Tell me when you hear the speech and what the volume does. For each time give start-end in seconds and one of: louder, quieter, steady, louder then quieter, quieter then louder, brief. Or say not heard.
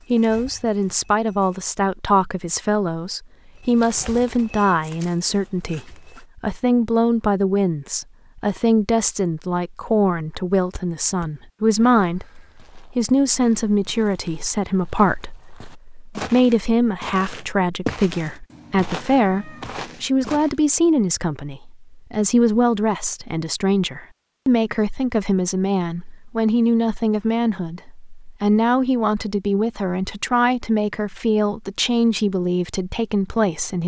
0.1-12.3 steady
12.9-33.8 steady.